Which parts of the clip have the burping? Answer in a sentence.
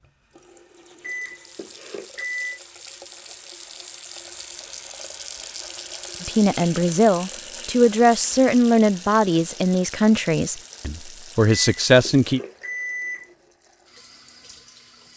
The burping can't be heard in this clip.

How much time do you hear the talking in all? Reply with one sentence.
You can hear the talking for 6 seconds altogether.